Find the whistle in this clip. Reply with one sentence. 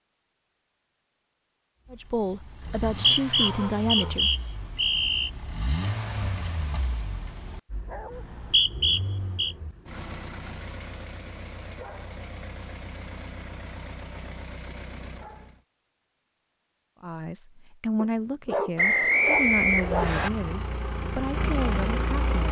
The whistle can be heard from 2.6 to 5.3 s, from 8.1 to 9.6 s and from 18.8 to 20.3 s.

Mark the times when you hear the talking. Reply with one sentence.
You can hear the talking from 1.9 to 4.3 s and from 17.0 to 22.4 s.